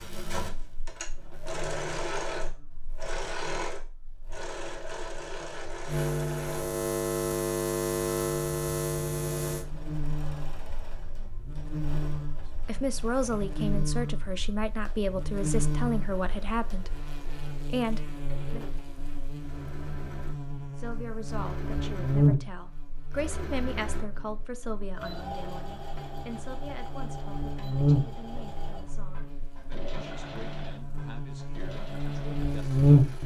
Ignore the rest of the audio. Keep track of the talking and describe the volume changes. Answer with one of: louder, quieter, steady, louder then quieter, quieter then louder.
quieter.